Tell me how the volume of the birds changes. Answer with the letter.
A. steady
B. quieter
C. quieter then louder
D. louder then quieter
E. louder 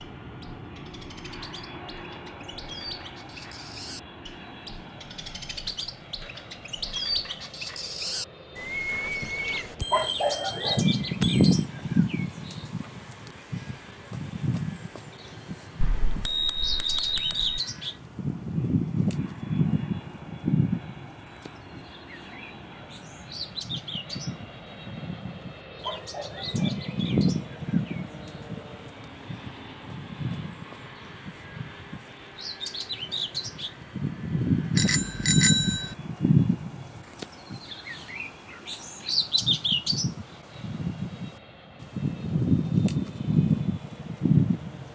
E.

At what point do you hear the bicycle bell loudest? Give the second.
35 s.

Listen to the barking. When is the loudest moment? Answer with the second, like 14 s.
10 s.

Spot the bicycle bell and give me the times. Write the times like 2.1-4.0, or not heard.
9.8-11.6, 15.8-17.6, 34.8-36.0.